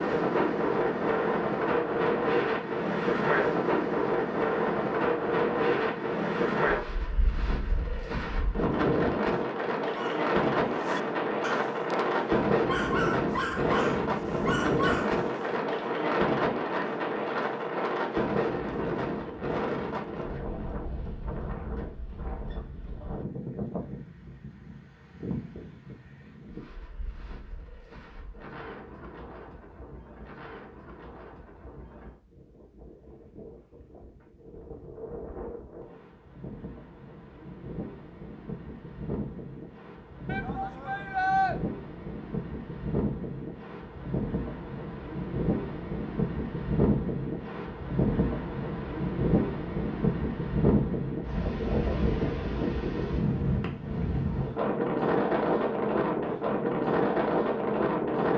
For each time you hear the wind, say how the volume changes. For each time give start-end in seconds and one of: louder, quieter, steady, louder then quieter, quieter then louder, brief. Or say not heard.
0.0-58.3 quieter then louder.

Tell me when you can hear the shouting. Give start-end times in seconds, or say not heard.
40.2-41.5.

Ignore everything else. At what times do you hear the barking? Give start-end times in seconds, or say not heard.
9.9-15.4.